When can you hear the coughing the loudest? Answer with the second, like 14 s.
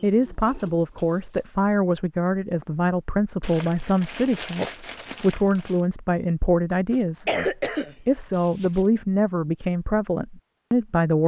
7 s.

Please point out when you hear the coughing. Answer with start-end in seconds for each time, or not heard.
6.9-8.8.